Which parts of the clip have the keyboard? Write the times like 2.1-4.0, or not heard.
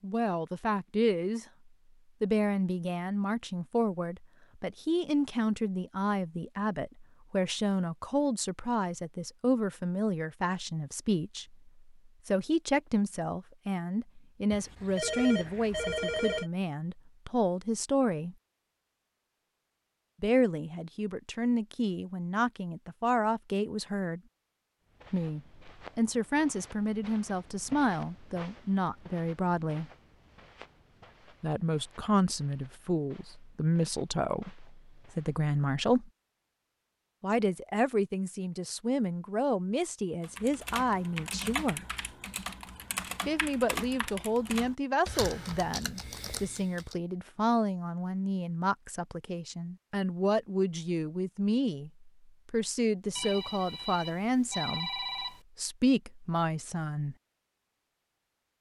40.2-47.0.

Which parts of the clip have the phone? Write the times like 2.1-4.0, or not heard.
14.5-16.5, 53.1-55.4.